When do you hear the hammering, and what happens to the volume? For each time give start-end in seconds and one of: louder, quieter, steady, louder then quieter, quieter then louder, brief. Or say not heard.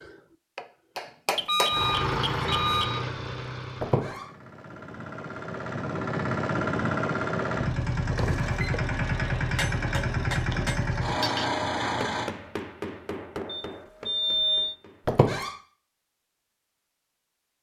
0.0-1.9 brief
9.6-15.6 quieter.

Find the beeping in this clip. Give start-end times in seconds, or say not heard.
1.4-3.0, 8.2-8.8, 13.4-14.8.